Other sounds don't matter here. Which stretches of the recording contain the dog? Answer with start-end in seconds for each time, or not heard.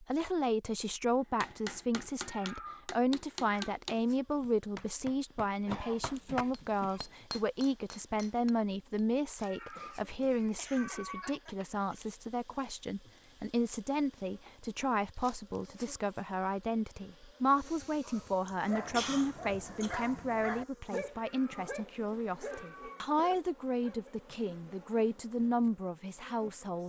18.0-24.1.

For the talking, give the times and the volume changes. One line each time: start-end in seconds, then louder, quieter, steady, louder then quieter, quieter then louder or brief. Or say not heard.
0.0-26.8 steady.